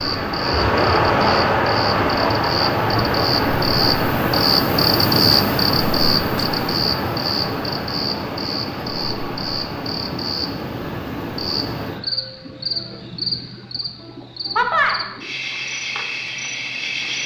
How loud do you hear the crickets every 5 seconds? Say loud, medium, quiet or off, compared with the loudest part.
loud, loud, loud, medium.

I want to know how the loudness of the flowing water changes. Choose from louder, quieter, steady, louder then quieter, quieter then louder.
quieter.